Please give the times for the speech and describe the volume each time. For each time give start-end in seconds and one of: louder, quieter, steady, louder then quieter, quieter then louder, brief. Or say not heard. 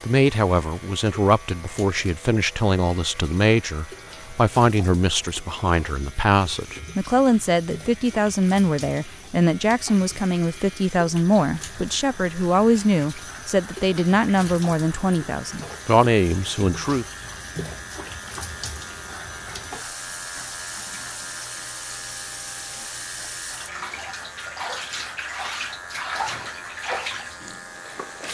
0.0-17.1 steady.